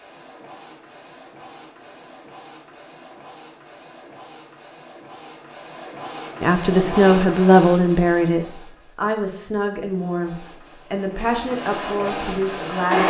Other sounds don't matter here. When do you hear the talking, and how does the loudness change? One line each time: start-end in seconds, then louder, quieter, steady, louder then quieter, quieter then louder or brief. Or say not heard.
6.4-13.0 quieter.